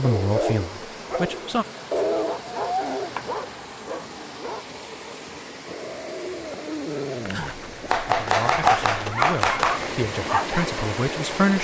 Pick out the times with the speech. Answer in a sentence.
The speech can be heard from 0.0 to 1.6 s and from 8.2 to 11.5 s.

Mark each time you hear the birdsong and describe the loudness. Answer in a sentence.
The birdsong can't be heard in this clip.